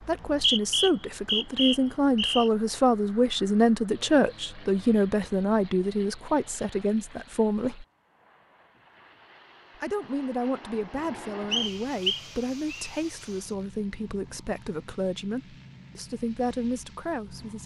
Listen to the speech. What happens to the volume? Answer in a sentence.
The loudness of the speech goes down.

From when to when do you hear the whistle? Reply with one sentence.
The whistle can be heard from 0.0 to 2.5 s and from 11.5 to 12.9 s.